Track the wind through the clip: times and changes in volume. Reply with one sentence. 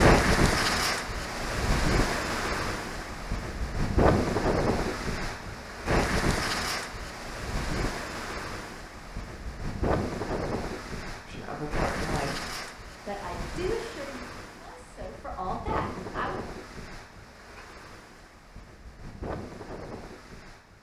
The wind can be heard from 0.0 to 20.7 s, getting quieter.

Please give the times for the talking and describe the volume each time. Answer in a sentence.
You can hear the talking from 11.2 to 16.4 s, getting quieter then louder.